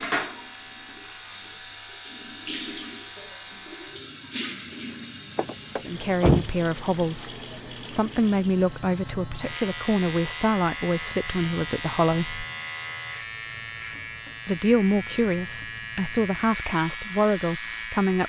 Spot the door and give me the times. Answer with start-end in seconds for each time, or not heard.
5.3-6.5.